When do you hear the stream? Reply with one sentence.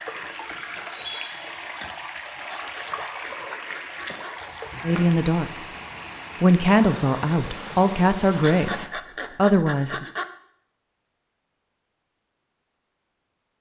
You can hear the stream from 0.0 to 8.9 s.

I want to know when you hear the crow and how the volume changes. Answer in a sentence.
You can't hear the crow here.